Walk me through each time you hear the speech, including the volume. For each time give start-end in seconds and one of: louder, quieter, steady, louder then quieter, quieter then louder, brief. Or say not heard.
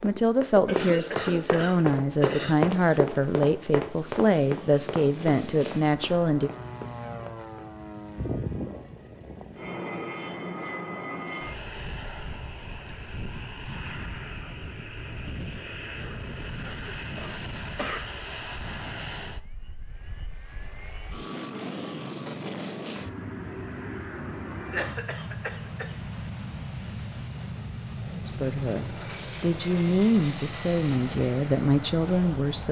0.0-6.5 steady
28.2-32.6 louder.